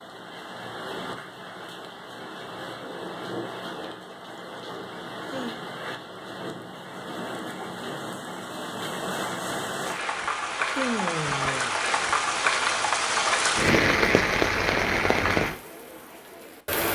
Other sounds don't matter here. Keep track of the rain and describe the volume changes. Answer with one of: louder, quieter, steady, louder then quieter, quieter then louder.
louder.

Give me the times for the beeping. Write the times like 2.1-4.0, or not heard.
not heard.